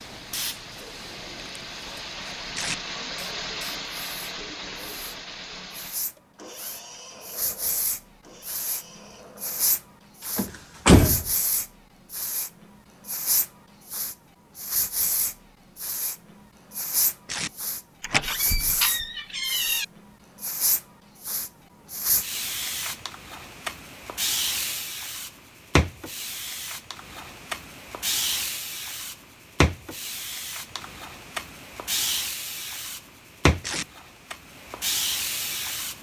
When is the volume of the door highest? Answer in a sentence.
The loudest moment of the door is at 11 seconds.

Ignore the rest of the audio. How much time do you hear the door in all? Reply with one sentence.
You can hear the door for 3 seconds altogether.